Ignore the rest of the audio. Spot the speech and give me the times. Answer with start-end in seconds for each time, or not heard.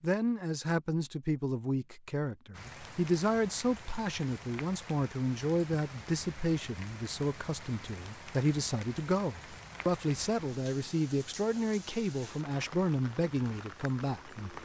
0.0-14.6.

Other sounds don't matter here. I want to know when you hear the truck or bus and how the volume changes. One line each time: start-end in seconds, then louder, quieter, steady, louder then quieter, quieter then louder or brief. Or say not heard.
not heard.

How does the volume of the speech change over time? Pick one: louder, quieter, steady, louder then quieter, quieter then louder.
steady.